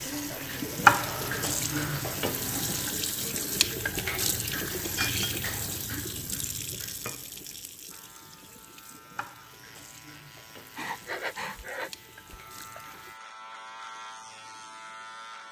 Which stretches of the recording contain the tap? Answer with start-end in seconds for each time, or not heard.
0.0-13.2.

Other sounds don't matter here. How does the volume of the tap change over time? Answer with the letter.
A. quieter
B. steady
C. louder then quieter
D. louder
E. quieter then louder
A.